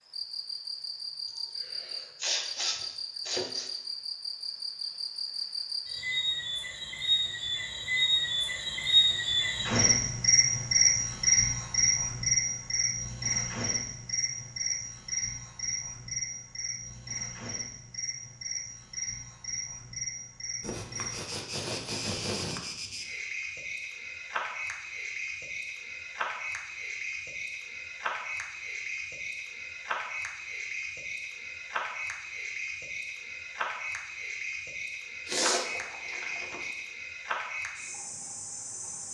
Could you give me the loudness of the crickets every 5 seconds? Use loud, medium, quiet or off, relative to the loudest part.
medium, loud, loud, medium, medium, medium, medium, medium.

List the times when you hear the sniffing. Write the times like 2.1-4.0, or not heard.
1.2-3.7, 20.6-22.6, 35.2-36.7.